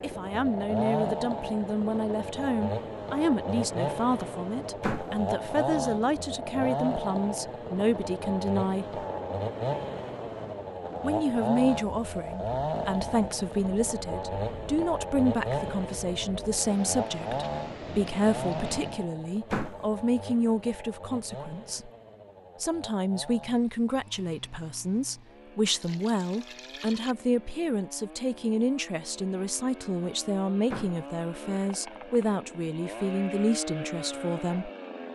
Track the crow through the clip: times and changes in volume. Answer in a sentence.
The crow can't be heard in this clip.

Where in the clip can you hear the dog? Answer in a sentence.
The dog can't be heard in this clip.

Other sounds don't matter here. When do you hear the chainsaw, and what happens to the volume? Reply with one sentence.
The chainsaw can be heard from 0.0 to 35.1 s, getting quieter then louder.